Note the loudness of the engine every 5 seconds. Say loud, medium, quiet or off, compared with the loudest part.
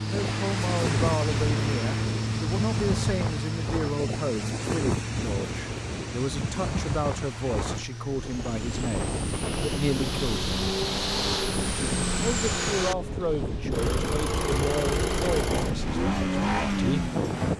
loud, medium, loud, loud.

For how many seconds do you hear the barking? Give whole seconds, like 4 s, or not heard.
not heard.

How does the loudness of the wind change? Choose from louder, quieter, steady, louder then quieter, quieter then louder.
steady.